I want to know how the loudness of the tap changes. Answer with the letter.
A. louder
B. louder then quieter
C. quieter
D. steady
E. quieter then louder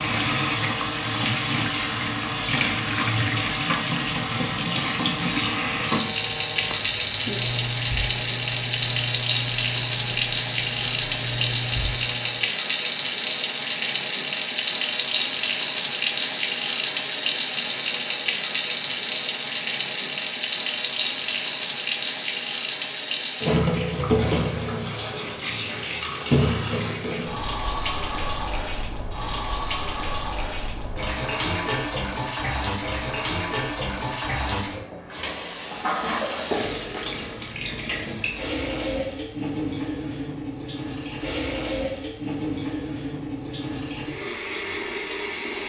C.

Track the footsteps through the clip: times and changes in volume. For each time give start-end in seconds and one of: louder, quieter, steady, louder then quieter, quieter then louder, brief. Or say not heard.
not heard.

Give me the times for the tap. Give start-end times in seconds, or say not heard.
0.0-45.6.